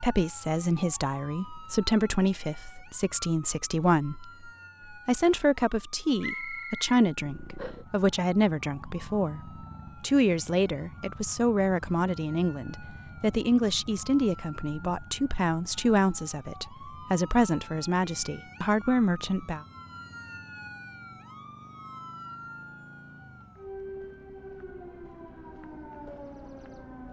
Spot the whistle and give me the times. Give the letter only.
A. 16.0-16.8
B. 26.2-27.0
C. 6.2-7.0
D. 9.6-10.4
C.